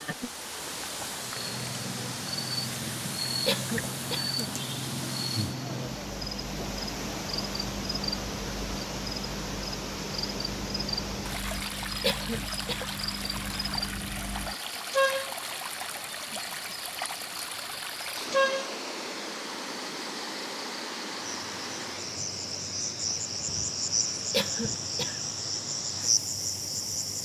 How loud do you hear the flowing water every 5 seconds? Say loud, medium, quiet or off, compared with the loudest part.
loud, loud, loud, loud, loud, medium.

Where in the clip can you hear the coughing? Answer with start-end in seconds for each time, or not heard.
3.5-4.5, 12.0-12.9, 24.3-25.3.